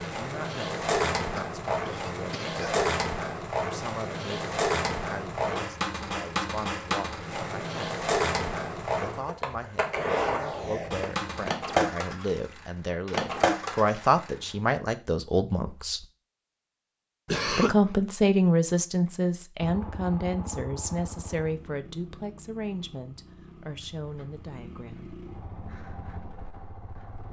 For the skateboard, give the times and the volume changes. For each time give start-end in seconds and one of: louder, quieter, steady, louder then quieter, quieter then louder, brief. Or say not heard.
0.0-14.5 steady.